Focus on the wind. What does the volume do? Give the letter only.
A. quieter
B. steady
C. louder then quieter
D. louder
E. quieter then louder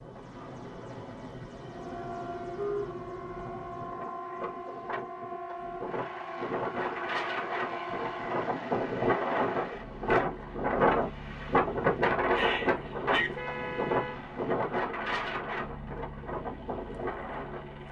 C.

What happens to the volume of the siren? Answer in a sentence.
The loudness of the siren stays about the same.